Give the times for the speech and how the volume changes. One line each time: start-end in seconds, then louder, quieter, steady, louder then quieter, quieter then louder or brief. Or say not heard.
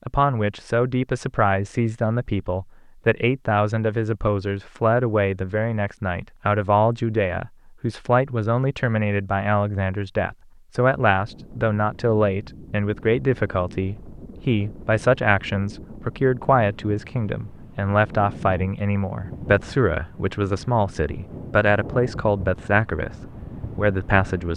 0.1-24.5 steady.